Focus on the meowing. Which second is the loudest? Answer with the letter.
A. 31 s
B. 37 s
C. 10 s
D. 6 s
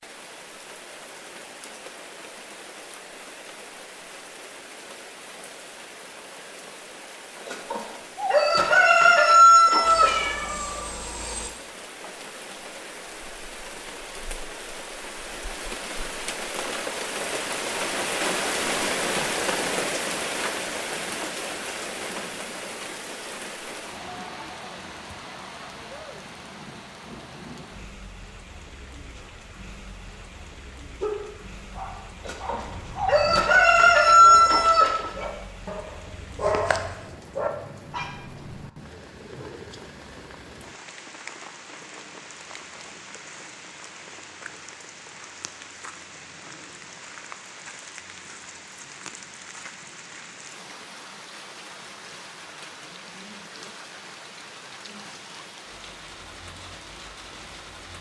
C.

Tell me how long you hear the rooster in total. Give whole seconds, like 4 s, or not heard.
6 s.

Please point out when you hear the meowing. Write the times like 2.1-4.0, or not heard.
9.8-11.5.